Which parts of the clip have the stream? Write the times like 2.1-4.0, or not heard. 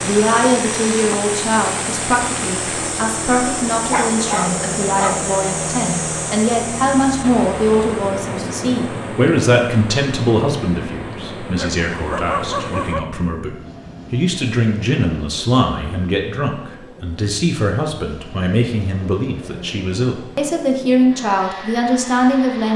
0.0-12.9.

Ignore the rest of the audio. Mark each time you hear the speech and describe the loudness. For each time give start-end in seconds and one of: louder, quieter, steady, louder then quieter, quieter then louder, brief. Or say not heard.
0.0-22.7 steady.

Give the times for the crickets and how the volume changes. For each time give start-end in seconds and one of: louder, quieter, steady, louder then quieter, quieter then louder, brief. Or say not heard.
not heard.